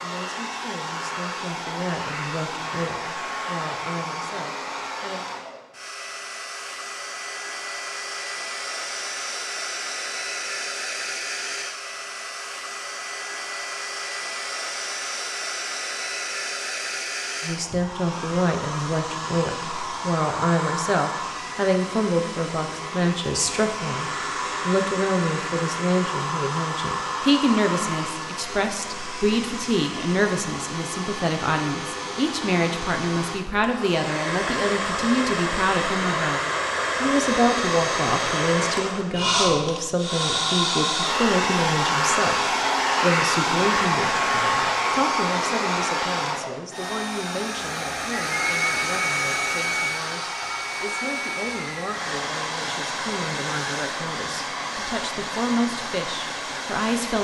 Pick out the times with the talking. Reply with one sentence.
The talking can be heard from 0.0 to 5.2 s and from 17.4 to 57.1 s.